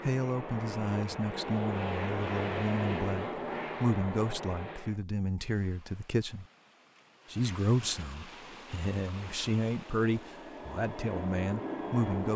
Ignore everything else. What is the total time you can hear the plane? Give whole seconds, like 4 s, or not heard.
9 s.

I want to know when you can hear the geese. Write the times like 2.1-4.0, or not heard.
not heard.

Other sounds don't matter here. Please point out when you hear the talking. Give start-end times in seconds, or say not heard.
0.0-6.5, 7.3-12.3.